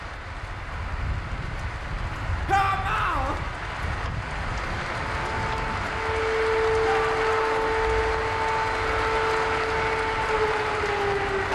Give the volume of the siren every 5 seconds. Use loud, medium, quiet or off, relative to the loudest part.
off, loud, loud.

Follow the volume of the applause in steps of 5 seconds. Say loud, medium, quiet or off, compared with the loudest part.
medium, loud, loud.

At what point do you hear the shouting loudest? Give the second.
3 s.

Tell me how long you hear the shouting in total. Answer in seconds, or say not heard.
2 s.